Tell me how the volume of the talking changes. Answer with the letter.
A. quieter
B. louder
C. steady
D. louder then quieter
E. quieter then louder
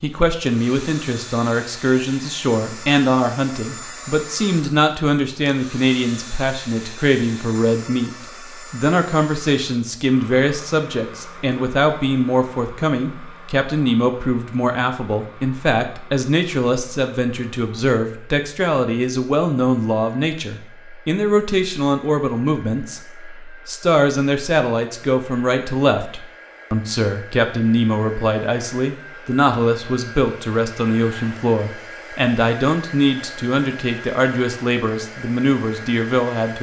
C.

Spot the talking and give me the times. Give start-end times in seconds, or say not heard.
0.0-36.5.